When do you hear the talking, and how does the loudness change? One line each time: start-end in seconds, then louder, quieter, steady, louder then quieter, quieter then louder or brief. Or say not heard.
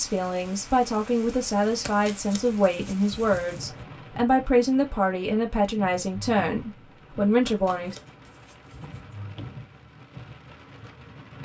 0.0-8.0 steady.